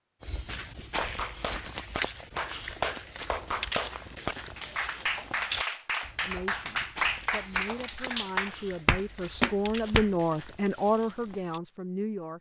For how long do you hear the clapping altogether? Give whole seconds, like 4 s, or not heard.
9 s.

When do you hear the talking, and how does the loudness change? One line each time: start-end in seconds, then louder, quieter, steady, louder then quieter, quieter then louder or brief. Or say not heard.
6.2-12.3 louder.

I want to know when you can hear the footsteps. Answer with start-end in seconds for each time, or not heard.
0.2-11.6.